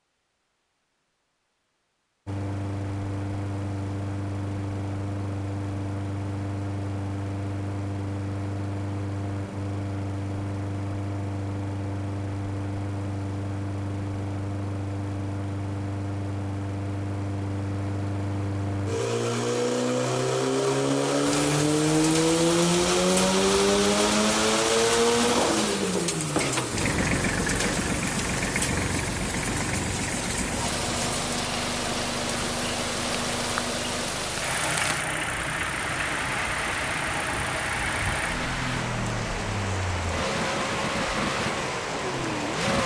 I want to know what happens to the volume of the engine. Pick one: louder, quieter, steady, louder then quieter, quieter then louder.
louder then quieter.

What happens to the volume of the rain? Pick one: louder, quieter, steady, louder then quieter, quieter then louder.
steady.